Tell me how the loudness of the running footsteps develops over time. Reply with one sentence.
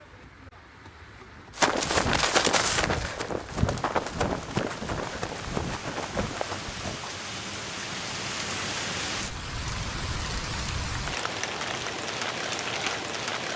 The volume of the running footsteps goes down.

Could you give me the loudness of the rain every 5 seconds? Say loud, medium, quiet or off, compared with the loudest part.
quiet, loud, loud.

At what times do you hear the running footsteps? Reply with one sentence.
The running footsteps can be heard from 1.6 to 7.0 s.